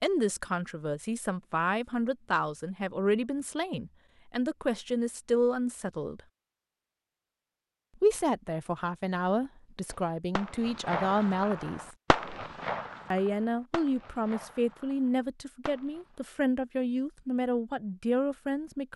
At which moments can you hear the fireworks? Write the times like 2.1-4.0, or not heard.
9.8-16.2.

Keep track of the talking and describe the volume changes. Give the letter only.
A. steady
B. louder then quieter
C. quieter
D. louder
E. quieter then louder
A.